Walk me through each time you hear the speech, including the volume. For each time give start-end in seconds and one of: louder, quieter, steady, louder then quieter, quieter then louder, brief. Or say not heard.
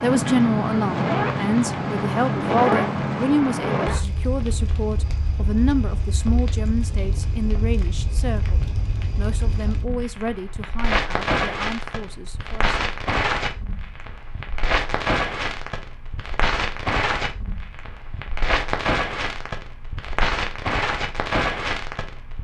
0.0-12.8 quieter.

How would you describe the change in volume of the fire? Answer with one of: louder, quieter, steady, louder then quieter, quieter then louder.
quieter then louder.